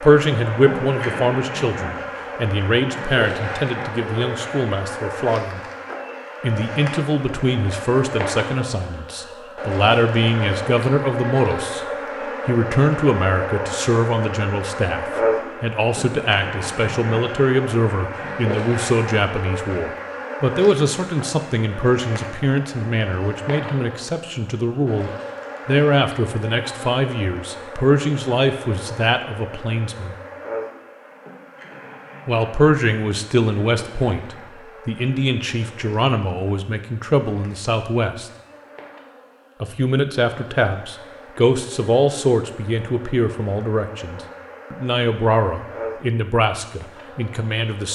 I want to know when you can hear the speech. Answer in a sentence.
The speech can be heard from 0.0 to 5.7 s, from 6.4 to 11.8 s, from 12.4 to 30.1 s, from 32.2 to 38.3 s and from 39.6 to 47.8 s.